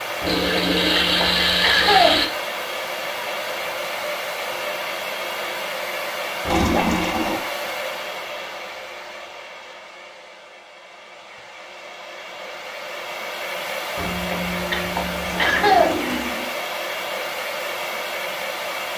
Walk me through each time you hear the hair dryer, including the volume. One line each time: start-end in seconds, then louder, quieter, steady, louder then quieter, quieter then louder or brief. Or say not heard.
0.0-18.9 quieter then louder.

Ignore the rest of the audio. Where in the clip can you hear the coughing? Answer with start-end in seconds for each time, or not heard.
0.2-2.2, 6.5-7.1, 13.9-15.9.